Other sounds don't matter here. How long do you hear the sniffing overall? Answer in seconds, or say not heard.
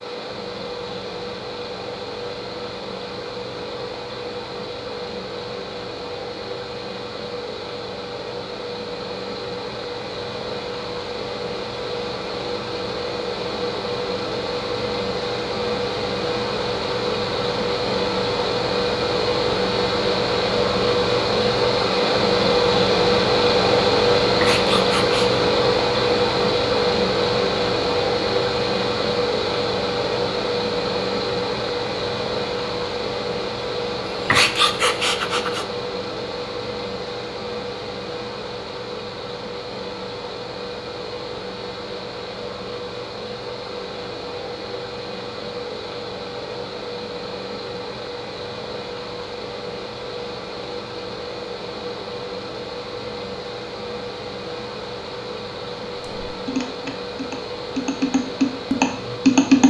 3 s.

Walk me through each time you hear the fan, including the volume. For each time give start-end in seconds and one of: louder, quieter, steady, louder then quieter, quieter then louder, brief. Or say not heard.
0.0-59.6 louder then quieter.